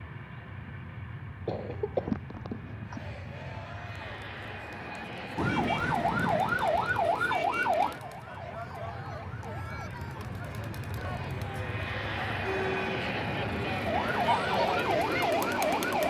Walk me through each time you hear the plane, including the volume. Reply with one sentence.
You can hear the plane from 0.0 to 16.0 s, getting louder.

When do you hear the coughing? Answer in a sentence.
The coughing can be heard from 1.4 to 3.0 s.